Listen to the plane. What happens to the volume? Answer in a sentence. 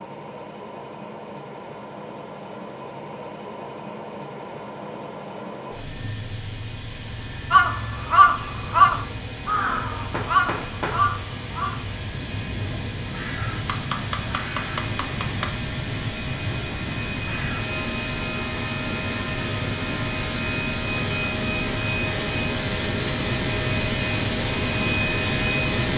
The volume of the plane goes up.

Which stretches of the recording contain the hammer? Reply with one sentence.
The hammer can be heard from 10.1 to 11.1 s and from 13.7 to 15.5 s.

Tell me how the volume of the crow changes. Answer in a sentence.
The loudness of the crow goes down.